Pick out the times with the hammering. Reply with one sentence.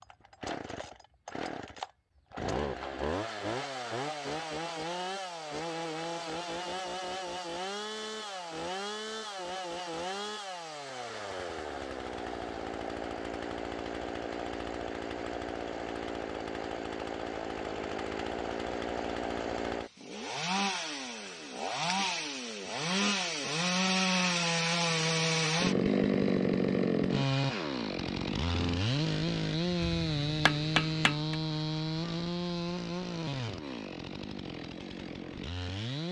The hammering can be heard from 29.8 to 31.4 s.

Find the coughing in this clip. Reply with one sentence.
You can't hear the coughing here.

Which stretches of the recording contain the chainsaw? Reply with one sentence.
The chainsaw can be heard from 0.0 to 36.0 s.